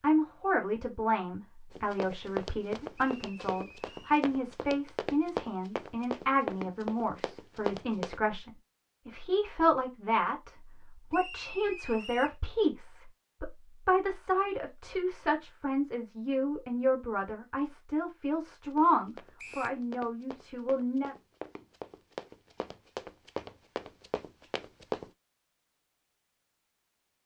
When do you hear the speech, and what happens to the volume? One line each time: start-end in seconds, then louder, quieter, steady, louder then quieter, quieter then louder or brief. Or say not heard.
0.0-21.1 steady.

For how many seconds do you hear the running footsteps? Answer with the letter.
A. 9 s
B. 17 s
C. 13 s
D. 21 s
C.